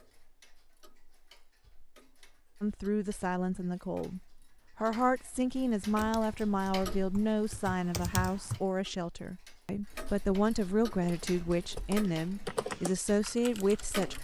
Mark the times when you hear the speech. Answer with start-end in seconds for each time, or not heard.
2.6-14.1.